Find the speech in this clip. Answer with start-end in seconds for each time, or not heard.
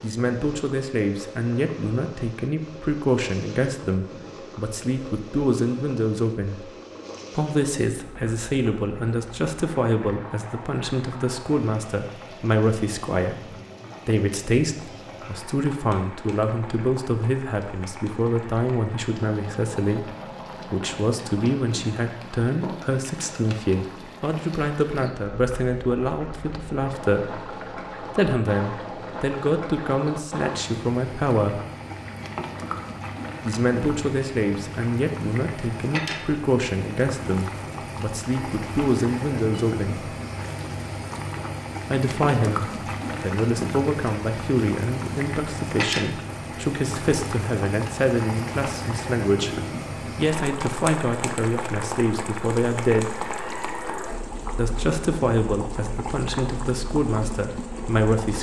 0.0-6.7, 7.3-31.6, 33.4-40.1, 41.9-53.1, 54.5-58.3.